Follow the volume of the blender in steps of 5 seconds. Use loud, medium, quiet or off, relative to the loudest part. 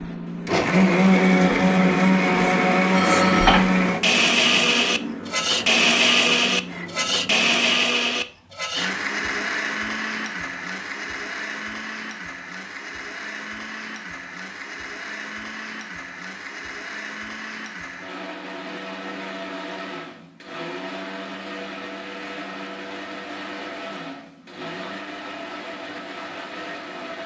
loud, loud, quiet, quiet, quiet, quiet.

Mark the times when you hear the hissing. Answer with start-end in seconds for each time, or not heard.
0.0-7.8.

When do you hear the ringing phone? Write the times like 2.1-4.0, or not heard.
3.0-3.6.